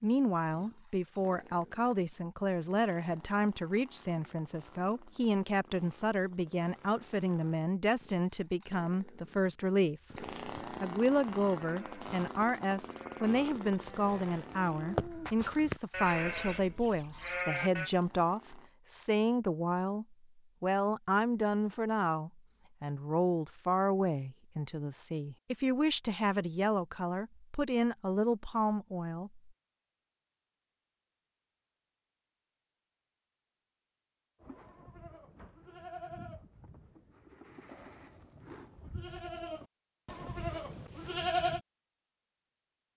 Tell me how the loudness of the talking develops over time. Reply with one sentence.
The loudness of the talking stays about the same.